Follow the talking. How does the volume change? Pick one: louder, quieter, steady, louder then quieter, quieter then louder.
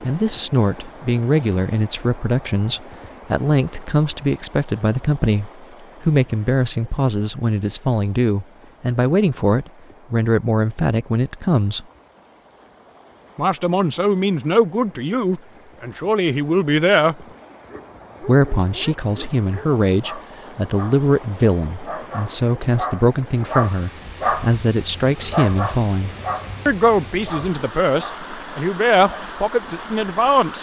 steady.